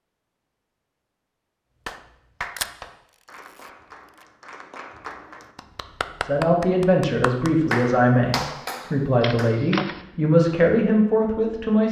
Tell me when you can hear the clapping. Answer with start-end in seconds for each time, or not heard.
1.9-9.6.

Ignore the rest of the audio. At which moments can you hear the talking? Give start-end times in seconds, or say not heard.
6.2-11.8.